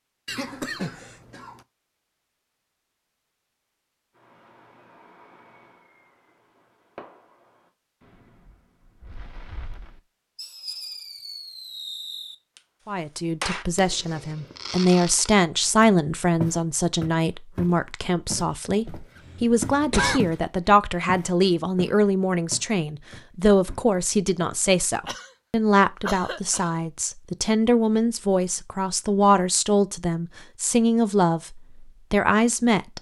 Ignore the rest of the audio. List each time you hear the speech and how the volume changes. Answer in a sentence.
The speech can be heard from 12.8 to 32.9 s, at a steady volume.